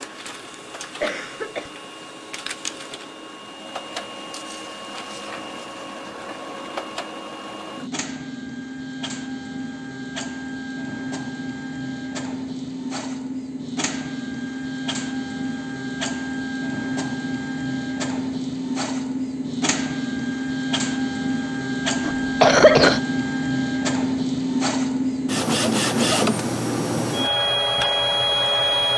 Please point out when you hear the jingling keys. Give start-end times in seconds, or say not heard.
not heard.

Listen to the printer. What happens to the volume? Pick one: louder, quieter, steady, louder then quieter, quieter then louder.
louder.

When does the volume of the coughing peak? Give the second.
23 s.